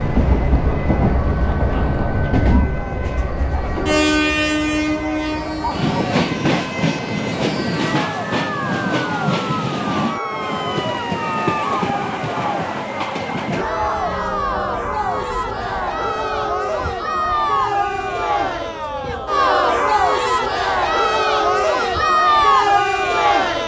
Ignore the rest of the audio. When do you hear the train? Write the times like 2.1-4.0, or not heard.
0.0-13.7.